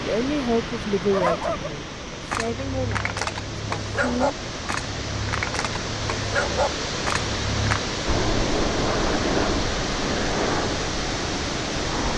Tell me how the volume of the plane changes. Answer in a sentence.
The loudness of the plane goes down.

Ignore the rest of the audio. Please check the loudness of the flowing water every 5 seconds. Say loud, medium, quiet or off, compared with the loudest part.
medium, loud, loud.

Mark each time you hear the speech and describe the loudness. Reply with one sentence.
You can hear the speech from 0.0 to 4.3 s, getting quieter.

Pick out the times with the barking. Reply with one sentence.
You can hear the barking from 1.1 to 7.8 s.